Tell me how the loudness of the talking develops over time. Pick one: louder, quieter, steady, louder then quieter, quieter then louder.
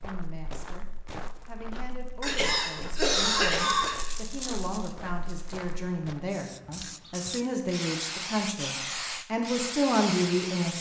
louder.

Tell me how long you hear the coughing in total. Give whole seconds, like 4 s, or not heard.
2 s.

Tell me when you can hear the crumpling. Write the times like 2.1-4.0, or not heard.
3.9-5.8.